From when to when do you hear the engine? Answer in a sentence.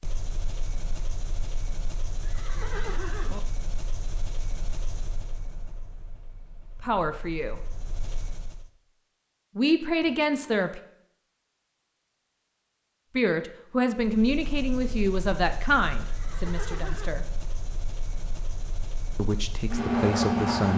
You can hear the engine from 0.0 to 8.7 s and from 13.9 to 20.7 s.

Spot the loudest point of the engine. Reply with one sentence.
The loudest moment of the engine is at 20 seconds.